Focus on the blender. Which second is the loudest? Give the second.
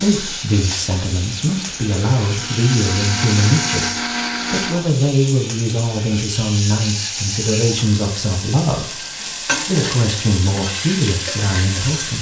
4 s.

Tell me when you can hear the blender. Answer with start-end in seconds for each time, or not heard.
0.0-4.8.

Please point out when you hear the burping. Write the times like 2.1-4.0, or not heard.
not heard.